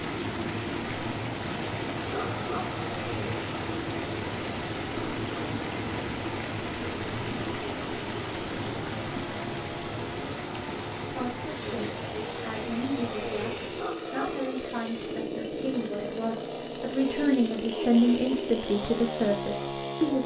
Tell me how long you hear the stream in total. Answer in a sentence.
The stream can be heard for 14 seconds in total.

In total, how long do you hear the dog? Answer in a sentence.
You can hear the dog for 2 seconds altogether.